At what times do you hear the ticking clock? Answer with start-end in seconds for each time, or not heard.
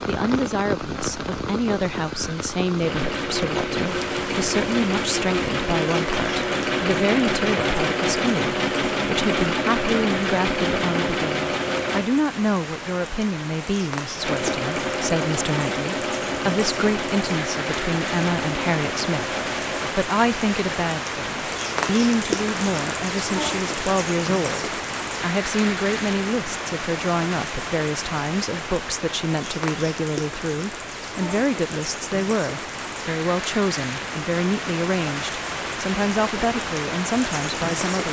not heard.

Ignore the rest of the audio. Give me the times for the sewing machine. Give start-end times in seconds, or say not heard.
2.8-12.1, 14.2-19.9.